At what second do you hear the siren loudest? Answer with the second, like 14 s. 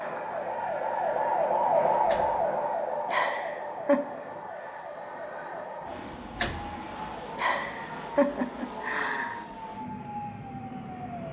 2 s.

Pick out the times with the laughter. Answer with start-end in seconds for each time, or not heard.
3.0-4.0, 7.3-9.4.